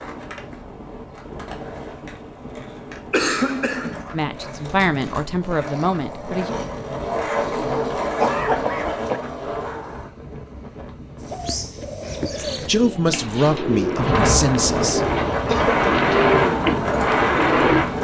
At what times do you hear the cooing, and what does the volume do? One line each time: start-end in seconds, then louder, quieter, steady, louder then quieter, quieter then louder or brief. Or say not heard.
11.2-17.9 louder.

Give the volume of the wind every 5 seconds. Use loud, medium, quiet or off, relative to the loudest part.
quiet, quiet, medium, loud.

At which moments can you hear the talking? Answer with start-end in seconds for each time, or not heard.
4.1-6.5, 12.3-15.1.